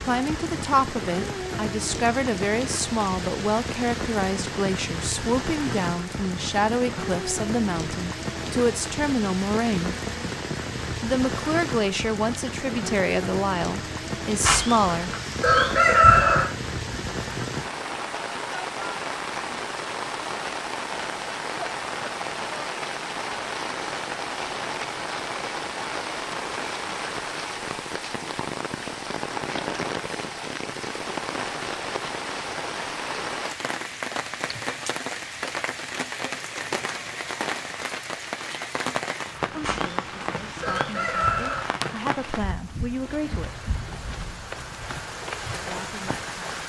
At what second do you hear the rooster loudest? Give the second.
16 s.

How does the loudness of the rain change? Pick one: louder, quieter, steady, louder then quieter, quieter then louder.
steady.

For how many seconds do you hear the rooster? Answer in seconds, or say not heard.
4 s.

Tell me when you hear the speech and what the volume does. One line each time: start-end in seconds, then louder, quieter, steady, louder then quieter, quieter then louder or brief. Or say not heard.
0.0-9.9 steady
11.0-15.1 steady
39.5-43.7 louder
45.5-46.6 brief.